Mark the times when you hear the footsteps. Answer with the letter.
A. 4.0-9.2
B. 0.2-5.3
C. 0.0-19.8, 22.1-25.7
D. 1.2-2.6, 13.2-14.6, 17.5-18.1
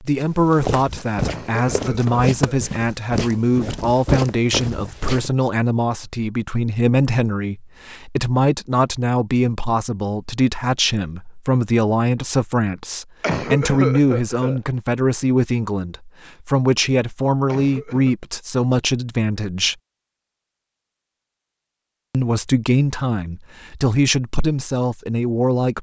B.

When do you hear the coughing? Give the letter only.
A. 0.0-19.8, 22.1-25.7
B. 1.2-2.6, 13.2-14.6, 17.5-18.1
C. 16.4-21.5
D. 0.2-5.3
B.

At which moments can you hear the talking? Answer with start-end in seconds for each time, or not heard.
0.0-19.8, 22.1-25.7.